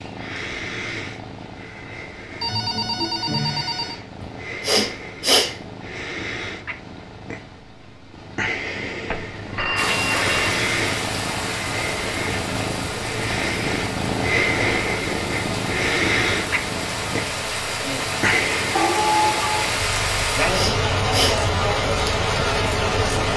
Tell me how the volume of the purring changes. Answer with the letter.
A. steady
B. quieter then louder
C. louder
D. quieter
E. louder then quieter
C.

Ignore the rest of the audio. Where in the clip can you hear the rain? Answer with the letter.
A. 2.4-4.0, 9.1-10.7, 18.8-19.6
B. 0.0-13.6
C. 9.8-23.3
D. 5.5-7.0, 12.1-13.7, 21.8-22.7
C.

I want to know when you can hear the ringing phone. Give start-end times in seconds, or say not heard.
2.4-4.0, 9.1-10.7, 18.8-19.6.